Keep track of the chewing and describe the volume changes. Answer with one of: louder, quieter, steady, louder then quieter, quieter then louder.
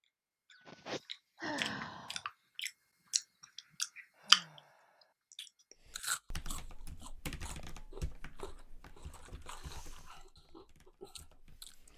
louder then quieter.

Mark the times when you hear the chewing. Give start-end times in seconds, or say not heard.
0.5-4.6, 5.3-11.9.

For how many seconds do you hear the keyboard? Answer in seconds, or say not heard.
6 s.